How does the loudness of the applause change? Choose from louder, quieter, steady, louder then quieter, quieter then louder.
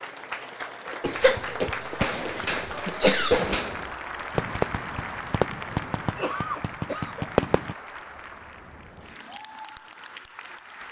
quieter.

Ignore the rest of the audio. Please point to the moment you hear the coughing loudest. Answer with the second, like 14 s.
3 s.